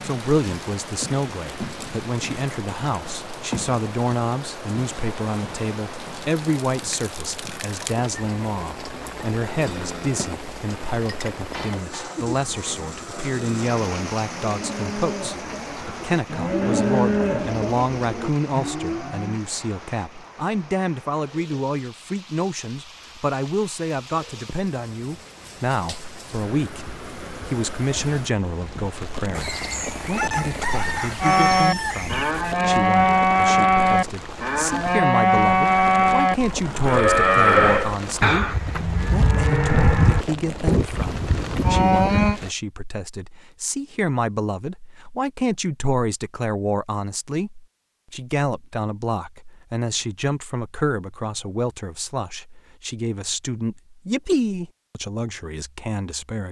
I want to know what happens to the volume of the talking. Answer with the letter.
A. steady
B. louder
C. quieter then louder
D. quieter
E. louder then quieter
A.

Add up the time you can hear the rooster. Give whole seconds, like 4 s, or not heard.
3 s.